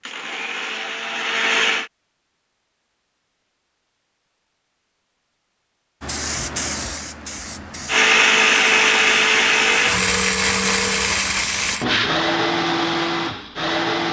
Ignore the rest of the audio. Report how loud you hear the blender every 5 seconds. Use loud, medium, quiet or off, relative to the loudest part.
medium, loud, medium.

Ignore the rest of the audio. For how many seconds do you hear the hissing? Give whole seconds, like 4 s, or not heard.
6 s.